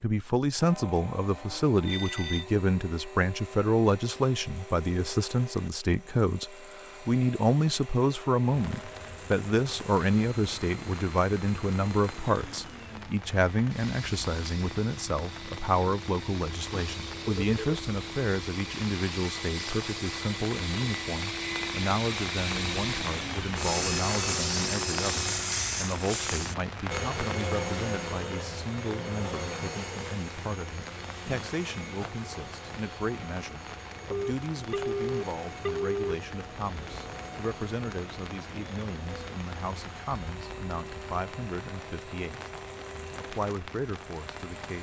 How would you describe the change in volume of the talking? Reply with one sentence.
The loudness of the talking goes down.